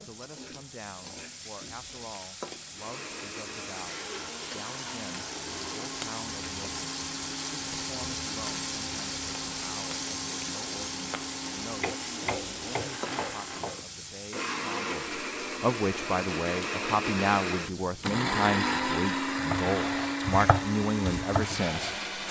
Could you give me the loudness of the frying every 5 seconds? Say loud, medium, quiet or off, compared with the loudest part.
medium, loud, loud, medium, medium.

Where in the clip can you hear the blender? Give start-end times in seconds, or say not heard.
2.7-22.2.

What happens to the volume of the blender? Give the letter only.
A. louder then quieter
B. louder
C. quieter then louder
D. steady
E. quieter
B.